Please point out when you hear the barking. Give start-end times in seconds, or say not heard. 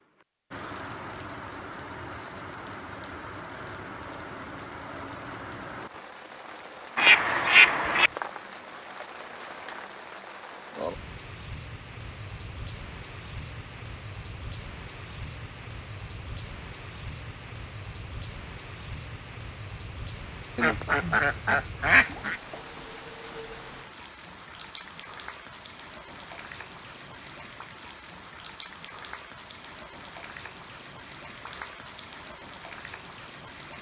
not heard.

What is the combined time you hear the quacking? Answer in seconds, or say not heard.
3 s.